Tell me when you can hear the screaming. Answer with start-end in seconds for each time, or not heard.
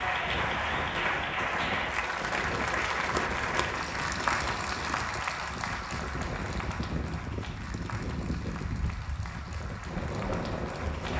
not heard.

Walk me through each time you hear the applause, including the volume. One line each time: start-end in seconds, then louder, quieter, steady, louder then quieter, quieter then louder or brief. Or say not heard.
0.0-11.1 quieter.